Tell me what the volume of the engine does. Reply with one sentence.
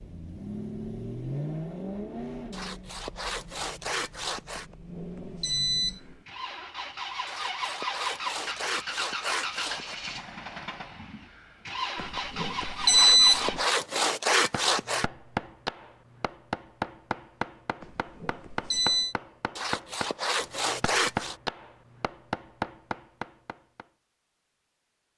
The loudness of the engine goes down, then up.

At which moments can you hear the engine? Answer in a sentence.
You can hear the engine from 0.0 to 13.7 s.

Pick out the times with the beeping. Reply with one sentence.
You can hear the beeping from 4.5 to 6.2 s, from 11.9 to 13.6 s and from 17.8 to 19.1 s.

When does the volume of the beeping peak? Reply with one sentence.
The volume of the beeping peaks at 13 seconds.